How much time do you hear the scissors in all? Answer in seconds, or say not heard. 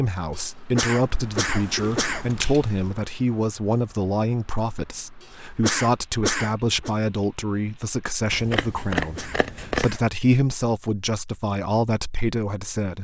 3 s.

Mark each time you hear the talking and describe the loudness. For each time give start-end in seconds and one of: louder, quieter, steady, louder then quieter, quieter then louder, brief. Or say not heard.
0.0-12.9 steady.